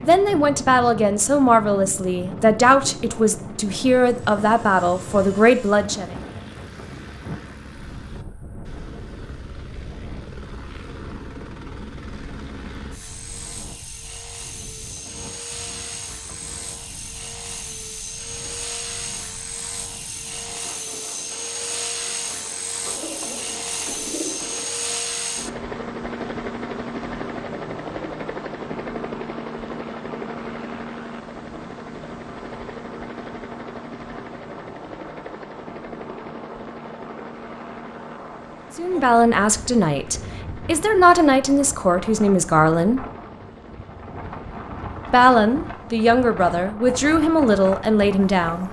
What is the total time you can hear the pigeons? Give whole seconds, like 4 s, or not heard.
2 s.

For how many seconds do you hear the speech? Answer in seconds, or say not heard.
14 s.